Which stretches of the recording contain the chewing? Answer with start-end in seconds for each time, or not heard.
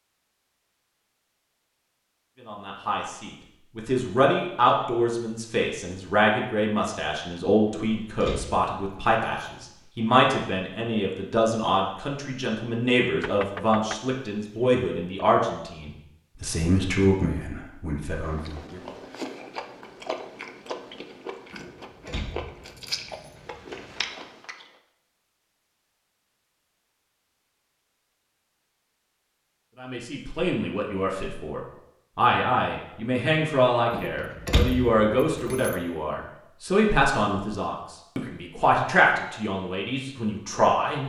18.1-24.7.